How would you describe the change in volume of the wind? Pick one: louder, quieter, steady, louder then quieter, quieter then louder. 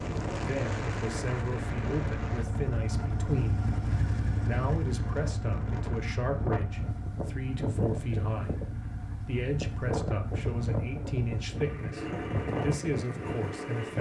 quieter then louder.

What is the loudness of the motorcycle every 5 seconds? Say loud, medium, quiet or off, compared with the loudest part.
loud, medium, medium.